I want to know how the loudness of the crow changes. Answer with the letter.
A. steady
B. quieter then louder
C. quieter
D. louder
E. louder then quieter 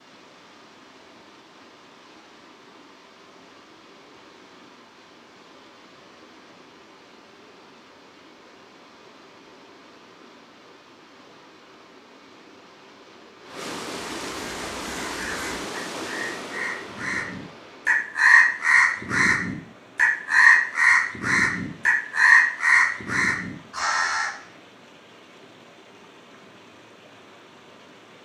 D.